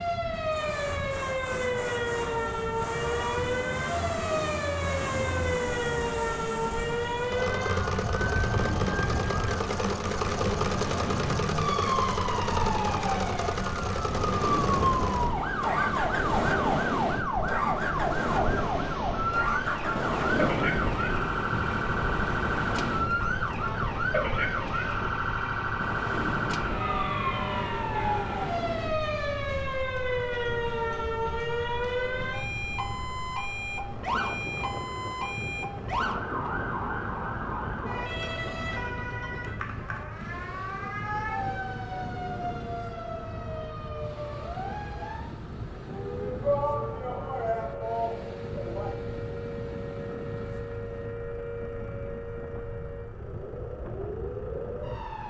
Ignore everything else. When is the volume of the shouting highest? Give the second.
47 s.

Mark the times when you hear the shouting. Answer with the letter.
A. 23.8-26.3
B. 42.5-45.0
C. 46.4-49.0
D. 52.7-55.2
C.